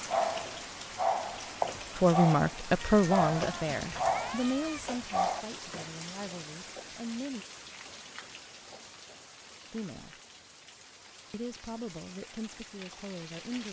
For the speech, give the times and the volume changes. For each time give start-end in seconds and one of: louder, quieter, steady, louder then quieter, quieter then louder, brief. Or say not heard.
1.9-7.5 quieter
9.7-10.2 brief
11.3-13.6 brief.